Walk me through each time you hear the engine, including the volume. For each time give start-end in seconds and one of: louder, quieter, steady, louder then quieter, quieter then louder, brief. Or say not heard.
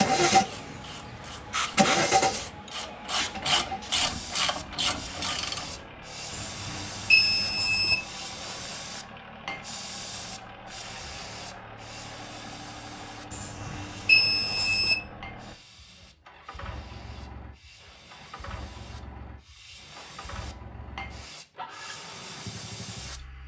0.0-23.4 quieter.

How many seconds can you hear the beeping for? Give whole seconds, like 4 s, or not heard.
3 s.